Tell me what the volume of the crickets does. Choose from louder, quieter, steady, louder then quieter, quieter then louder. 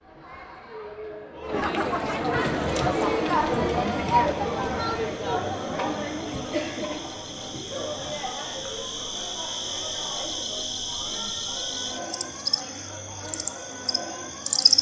louder.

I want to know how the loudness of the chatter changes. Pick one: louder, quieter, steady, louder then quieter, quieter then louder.
quieter.